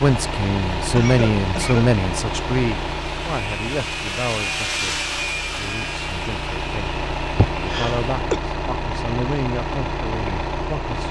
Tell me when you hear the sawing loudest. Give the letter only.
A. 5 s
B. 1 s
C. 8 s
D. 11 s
A.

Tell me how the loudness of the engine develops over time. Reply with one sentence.
The loudness of the engine goes down, then up.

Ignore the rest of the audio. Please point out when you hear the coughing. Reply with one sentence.
The coughing can be heard from 0.9 to 1.9 s and from 7.3 to 8.4 s.